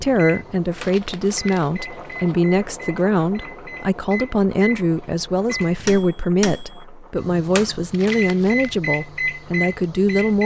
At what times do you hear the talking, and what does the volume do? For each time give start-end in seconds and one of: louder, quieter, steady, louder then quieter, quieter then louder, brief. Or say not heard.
0.0-10.4 steady.